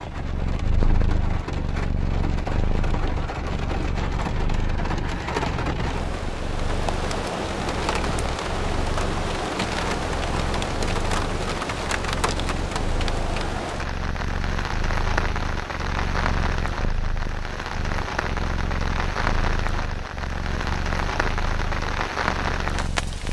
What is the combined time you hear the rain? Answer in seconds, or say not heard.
23 s.